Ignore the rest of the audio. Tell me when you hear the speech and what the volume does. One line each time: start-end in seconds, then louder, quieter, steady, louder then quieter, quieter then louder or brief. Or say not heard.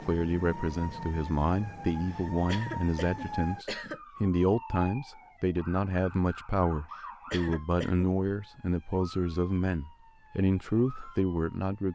0.0-11.9 steady.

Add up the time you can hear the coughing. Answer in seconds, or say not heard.
3 s.